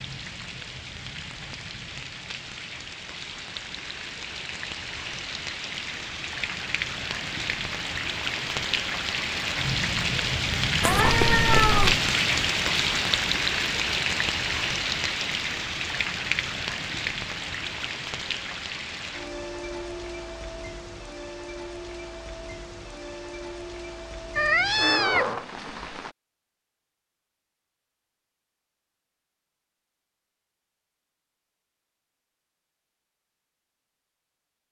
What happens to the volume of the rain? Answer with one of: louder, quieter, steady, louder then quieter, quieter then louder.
louder then quieter.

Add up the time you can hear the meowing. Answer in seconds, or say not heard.
2 s.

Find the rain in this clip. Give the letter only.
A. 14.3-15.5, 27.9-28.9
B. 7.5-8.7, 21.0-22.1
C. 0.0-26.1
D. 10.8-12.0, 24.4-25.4
C.